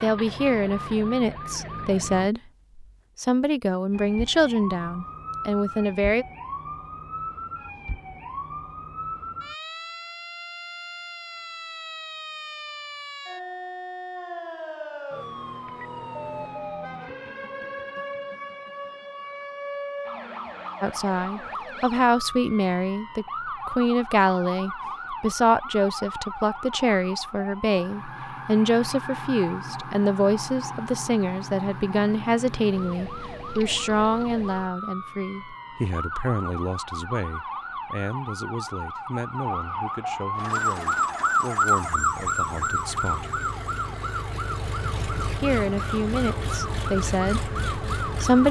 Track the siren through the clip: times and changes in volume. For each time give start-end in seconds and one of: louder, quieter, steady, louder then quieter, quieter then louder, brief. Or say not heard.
0.0-2.3 brief
3.9-48.4 louder.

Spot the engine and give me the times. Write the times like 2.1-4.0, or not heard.
40.4-48.4.